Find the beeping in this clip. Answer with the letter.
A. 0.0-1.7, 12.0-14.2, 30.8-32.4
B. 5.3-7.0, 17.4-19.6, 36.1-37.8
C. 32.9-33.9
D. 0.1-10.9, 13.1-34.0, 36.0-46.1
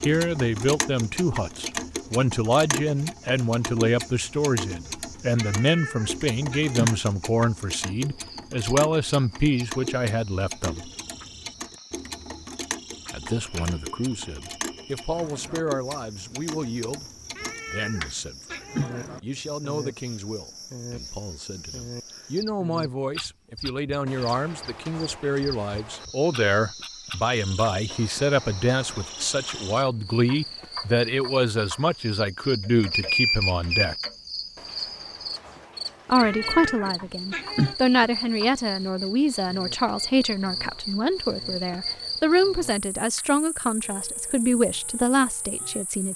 C.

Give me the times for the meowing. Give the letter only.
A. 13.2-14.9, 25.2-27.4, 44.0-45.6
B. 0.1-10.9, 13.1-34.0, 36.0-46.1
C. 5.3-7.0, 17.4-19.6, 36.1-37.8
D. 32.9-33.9
C.